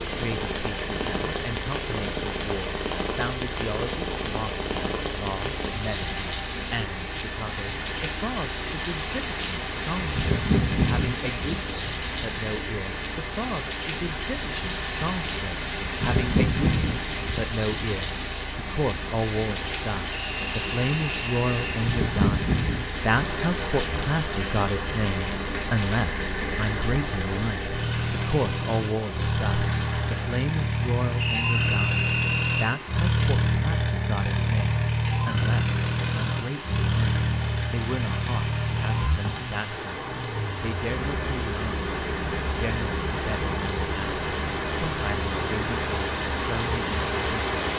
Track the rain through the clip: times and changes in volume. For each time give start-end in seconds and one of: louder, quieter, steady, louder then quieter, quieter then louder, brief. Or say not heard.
0.0-47.7 quieter then louder.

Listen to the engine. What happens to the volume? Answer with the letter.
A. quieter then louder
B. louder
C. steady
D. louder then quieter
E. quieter
D.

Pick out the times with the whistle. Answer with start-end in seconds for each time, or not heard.
20.1-21.8, 31.2-32.8.